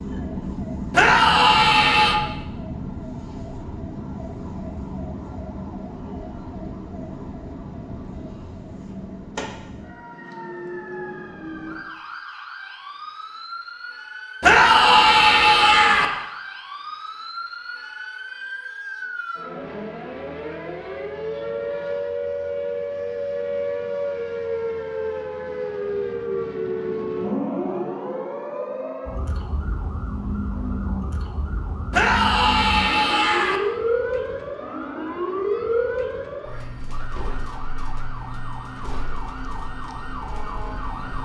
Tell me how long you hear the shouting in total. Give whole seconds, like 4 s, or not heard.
5 s.